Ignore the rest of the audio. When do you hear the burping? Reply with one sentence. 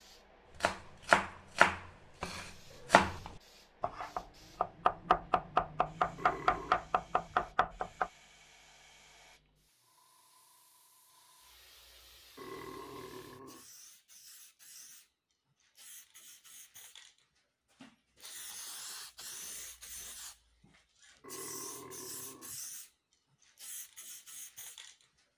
The burping can be heard from 6.2 to 6.8 s, from 12.3 to 13.7 s and from 21.2 to 22.7 s.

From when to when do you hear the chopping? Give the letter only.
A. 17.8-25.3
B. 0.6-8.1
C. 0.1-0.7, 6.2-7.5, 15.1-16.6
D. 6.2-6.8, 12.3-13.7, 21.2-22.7
B.